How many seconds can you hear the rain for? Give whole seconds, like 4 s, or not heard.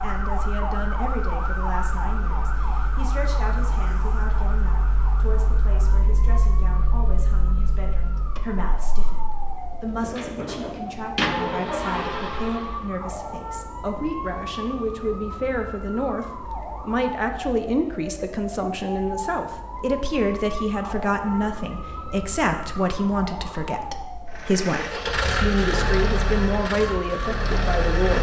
not heard.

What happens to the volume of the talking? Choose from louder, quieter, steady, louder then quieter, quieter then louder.
louder.